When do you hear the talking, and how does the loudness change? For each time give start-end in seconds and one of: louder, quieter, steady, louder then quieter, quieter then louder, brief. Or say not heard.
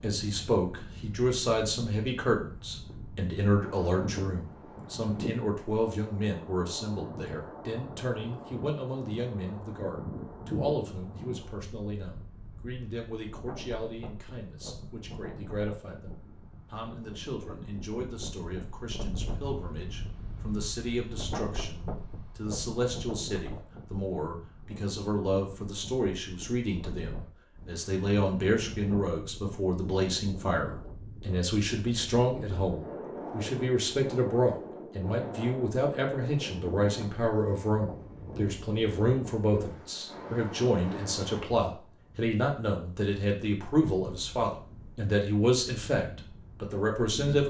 0.0-47.4 quieter then louder.